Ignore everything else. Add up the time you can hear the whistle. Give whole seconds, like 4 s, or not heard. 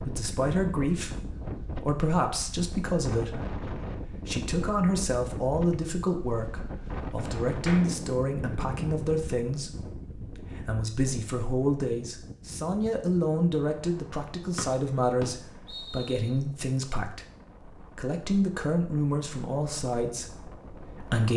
2 s.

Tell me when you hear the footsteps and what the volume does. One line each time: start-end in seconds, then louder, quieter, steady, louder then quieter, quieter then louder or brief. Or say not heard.
not heard.